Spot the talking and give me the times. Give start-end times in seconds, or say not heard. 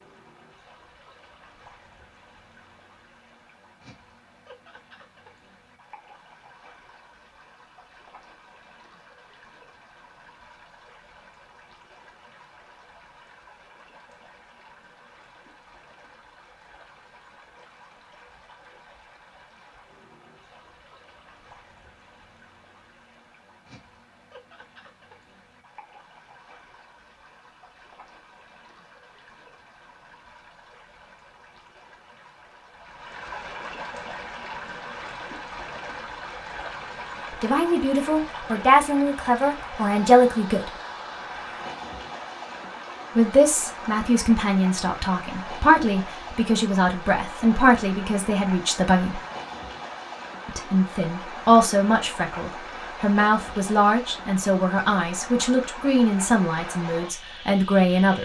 37.3-40.7, 43.1-49.2, 50.5-58.1.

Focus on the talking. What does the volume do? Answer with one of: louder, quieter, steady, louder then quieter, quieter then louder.
steady.